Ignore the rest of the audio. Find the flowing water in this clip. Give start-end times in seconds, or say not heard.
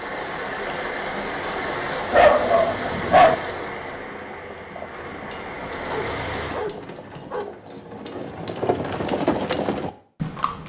0.0-6.7.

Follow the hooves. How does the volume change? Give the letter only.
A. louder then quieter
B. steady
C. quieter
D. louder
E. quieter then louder
D.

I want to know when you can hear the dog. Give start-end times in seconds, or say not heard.
2.1-3.4, 5.9-7.5.